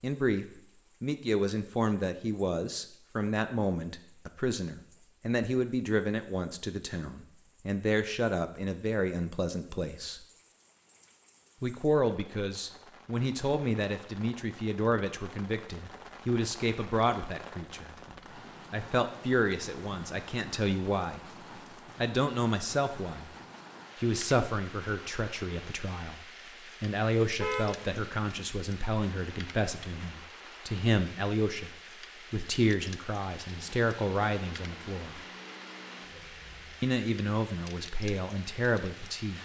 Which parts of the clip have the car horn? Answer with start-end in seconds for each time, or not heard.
27.4-28.5.